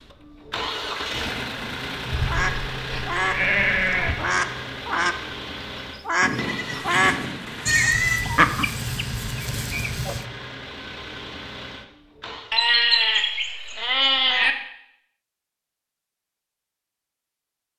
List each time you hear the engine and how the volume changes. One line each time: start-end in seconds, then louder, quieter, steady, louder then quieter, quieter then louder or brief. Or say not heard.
0.0-12.6 quieter.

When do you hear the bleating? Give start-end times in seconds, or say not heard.
2.1-4.2, 6.2-8.2, 12.5-14.6.